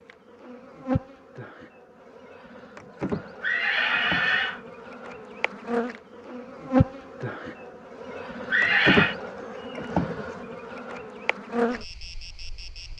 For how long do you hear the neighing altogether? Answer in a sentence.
You can hear the neighing for 2 seconds altogether.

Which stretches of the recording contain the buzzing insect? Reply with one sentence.
The buzzing insect can be heard from 0.1 to 12.9 s.